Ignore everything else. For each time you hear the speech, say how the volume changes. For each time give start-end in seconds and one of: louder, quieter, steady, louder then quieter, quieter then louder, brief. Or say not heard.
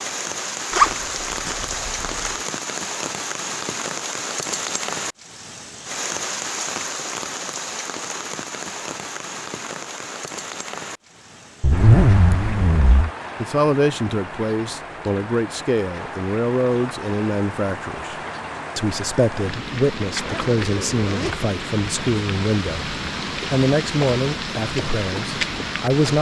13.4-26.1 steady.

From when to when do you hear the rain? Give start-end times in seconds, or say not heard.
0.0-26.1.